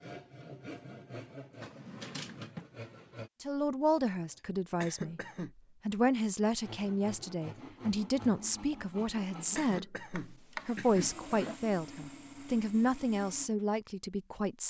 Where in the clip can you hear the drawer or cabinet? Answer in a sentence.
The drawer or cabinet can be heard from 1.6 to 2.6 s and from 10.2 to 11.6 s.